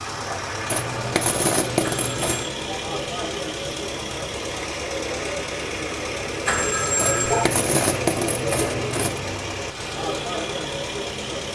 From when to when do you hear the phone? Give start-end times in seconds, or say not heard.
1.8-2.4, 6.5-7.5.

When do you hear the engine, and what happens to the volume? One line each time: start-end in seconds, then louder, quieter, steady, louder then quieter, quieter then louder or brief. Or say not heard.
0.0-11.4 steady.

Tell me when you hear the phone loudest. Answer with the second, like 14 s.
7 s.